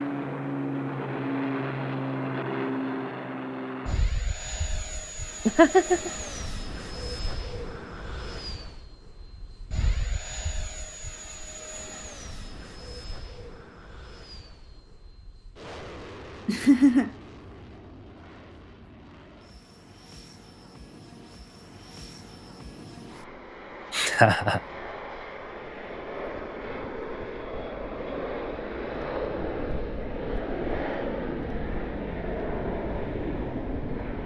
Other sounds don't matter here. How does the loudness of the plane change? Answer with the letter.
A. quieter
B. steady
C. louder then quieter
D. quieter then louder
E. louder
D.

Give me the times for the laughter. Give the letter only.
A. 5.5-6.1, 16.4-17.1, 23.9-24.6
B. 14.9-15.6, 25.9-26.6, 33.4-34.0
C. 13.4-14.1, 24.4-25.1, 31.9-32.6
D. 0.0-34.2
A.